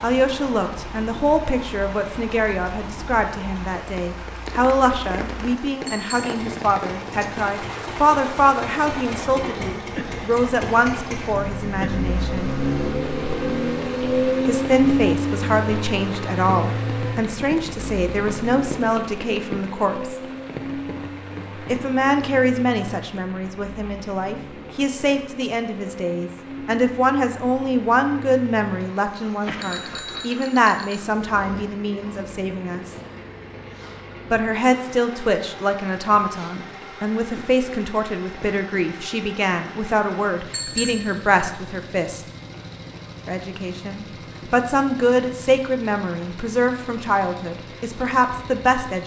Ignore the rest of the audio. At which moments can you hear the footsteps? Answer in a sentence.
The footsteps can't be heard in this clip.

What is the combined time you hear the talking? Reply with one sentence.
The talking can be heard for 43 seconds in total.